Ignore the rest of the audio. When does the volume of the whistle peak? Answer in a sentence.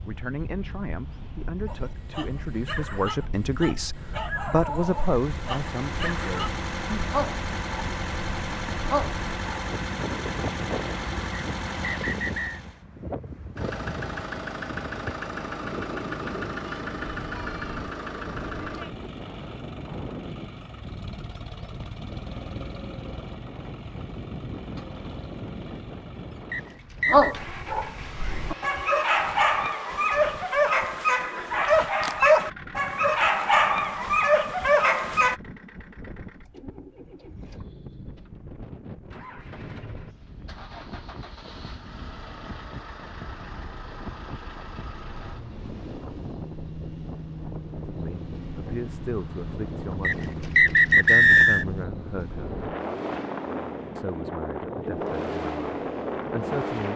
The loudest moment of the whistle is at 51 seconds.